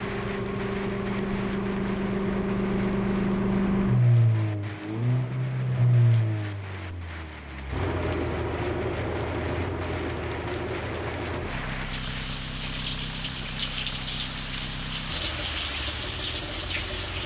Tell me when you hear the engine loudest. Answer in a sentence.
The volume of the engine peaks at 4 seconds.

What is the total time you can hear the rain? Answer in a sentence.
You can hear the rain for 17 seconds altogether.